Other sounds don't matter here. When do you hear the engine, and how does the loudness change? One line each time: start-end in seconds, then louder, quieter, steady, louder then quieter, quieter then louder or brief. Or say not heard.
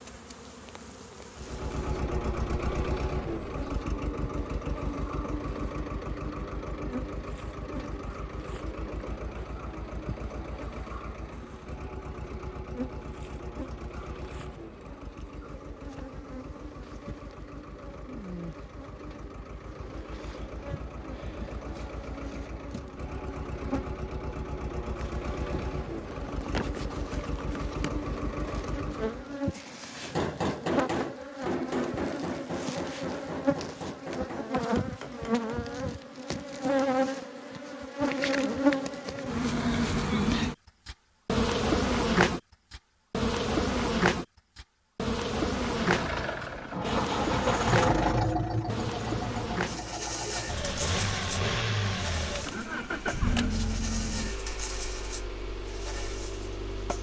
1.4-29.4 quieter then louder
45.8-56.9 quieter.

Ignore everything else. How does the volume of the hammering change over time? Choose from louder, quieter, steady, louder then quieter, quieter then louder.
quieter.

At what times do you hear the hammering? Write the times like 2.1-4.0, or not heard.
30.0-35.5.